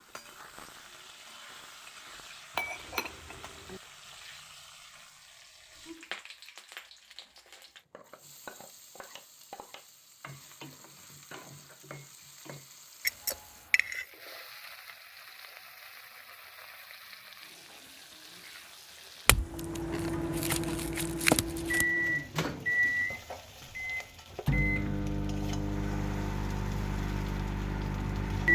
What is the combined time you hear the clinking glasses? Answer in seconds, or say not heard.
5 s.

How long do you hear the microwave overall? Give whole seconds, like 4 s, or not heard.
9 s.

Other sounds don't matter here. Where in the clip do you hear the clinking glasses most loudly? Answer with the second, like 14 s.
21 s.